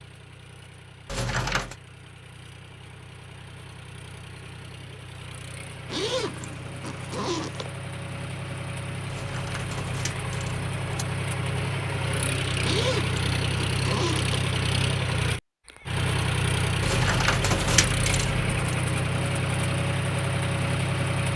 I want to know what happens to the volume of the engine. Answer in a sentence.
The volume of the engine goes up.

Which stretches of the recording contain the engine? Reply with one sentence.
The engine can be heard from 0.0 to 21.3 s.